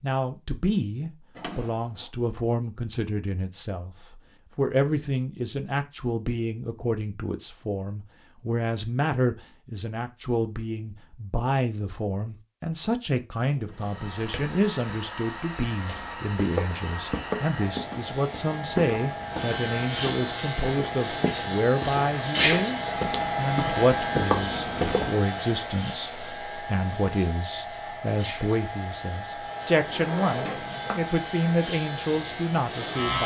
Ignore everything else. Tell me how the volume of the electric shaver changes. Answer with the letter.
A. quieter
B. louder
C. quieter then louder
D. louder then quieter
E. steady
C.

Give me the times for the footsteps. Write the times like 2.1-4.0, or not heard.
15.7-25.1.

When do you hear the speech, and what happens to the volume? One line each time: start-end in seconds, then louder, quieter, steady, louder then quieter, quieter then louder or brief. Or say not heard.
0.0-33.2 steady.